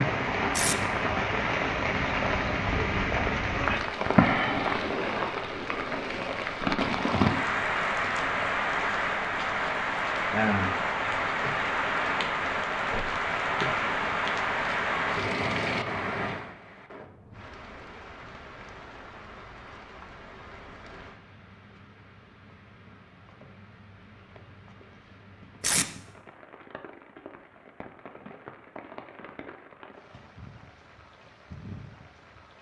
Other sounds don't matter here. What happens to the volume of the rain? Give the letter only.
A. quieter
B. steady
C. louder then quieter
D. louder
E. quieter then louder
A.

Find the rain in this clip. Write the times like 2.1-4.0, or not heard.
0.0-32.5.